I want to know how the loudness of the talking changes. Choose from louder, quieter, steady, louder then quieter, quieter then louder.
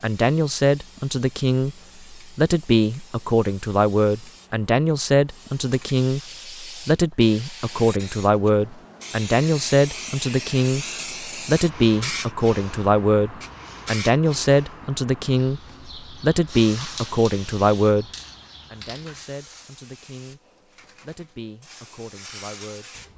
quieter.